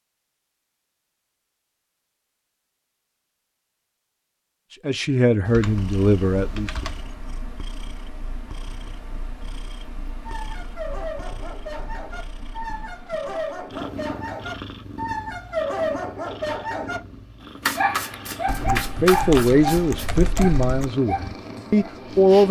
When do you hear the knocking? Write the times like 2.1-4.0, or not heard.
not heard.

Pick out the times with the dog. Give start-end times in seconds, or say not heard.
10.2-17.0, 17.6-21.9.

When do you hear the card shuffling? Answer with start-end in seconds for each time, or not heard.
17.6-20.1.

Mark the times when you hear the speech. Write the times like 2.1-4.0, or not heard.
4.8-6.7, 18.6-22.4.